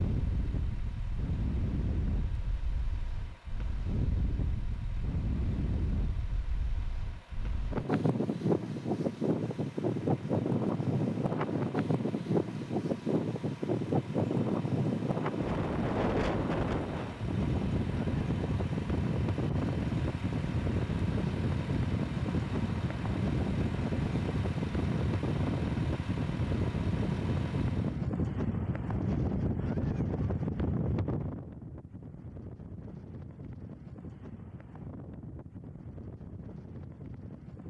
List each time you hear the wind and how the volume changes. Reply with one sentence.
You can hear the wind from 0.0 to 37.6 s, getting louder then quieter.